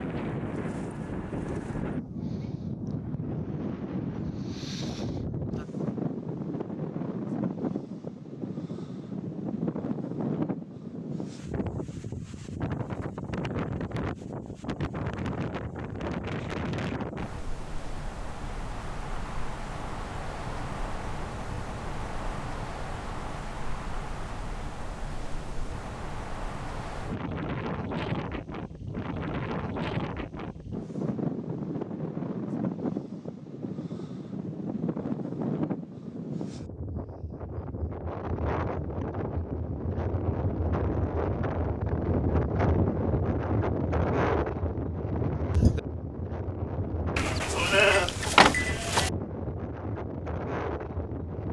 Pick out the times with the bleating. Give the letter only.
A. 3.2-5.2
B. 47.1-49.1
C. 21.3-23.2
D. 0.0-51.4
B.